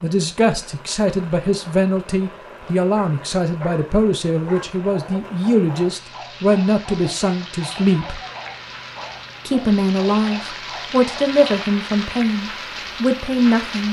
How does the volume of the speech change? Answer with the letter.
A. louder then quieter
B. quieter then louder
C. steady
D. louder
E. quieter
C.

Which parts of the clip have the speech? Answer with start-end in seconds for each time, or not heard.
0.0-8.2, 9.4-13.8.